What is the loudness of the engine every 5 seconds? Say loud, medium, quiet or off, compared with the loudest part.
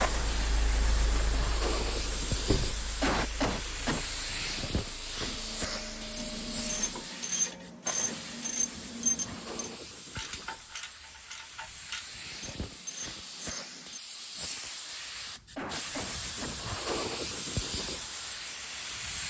loud, loud, off, off.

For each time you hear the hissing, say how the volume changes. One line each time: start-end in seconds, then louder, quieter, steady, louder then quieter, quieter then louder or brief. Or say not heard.
0.0-19.2 quieter then louder.